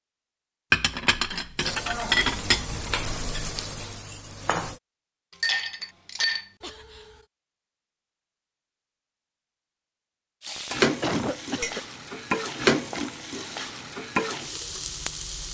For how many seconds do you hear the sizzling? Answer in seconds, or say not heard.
8 s.